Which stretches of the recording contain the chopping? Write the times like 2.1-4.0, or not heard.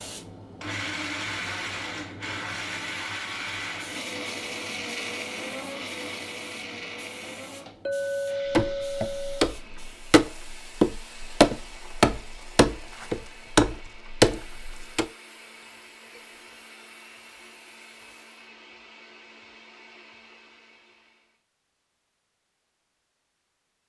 8.5-15.1.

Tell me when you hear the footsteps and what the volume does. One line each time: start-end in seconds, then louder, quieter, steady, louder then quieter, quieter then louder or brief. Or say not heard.
not heard.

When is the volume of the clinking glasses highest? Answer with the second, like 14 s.
8 s.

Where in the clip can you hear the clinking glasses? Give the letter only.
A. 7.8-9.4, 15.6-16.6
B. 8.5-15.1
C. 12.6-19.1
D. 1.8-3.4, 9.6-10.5
A.